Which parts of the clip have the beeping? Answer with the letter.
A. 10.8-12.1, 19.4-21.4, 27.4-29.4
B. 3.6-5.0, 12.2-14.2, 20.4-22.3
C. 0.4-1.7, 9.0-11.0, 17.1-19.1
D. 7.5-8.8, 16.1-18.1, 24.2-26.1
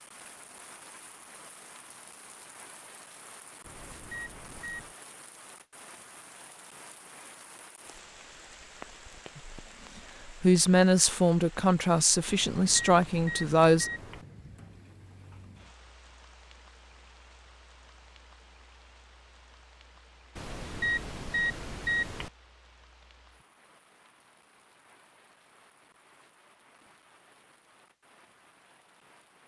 B.